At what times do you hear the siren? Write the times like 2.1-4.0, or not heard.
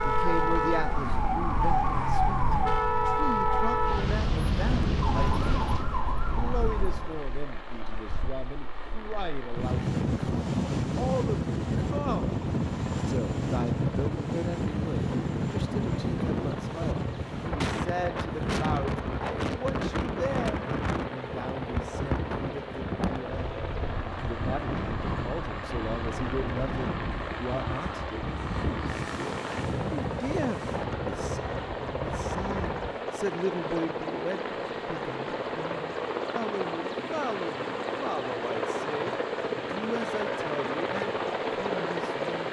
0.0-7.2.